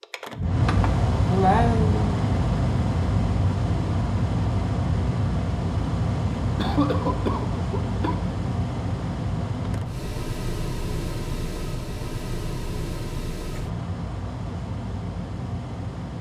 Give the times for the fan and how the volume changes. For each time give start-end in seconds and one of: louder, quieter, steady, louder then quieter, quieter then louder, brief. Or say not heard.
0.0-16.1 quieter.